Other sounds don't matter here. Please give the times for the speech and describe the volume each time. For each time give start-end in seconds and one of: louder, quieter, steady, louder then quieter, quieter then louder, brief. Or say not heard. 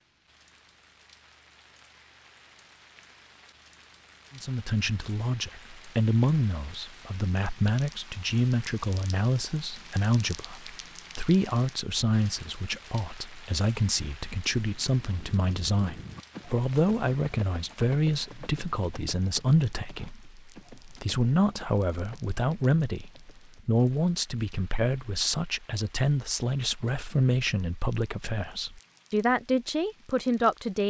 4.3-30.8 steady.